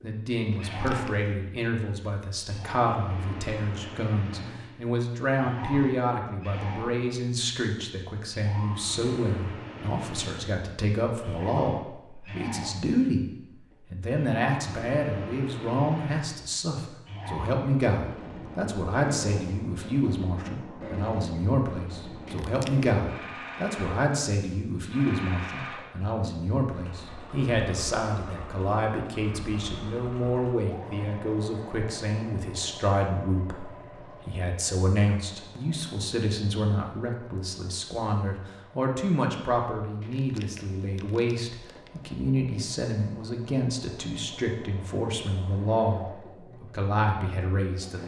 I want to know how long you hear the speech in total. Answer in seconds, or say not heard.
47 s.